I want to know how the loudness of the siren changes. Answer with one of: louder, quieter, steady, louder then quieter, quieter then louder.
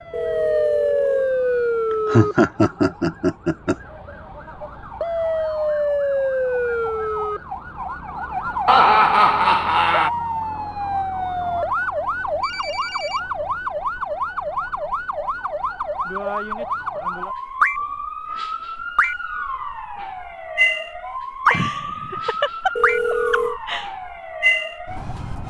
steady.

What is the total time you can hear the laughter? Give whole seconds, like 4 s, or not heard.
6 s.